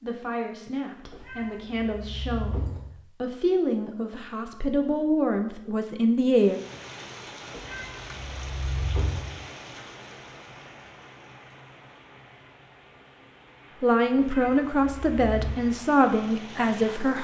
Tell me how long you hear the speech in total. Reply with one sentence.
You can hear the speech for 10 seconds altogether.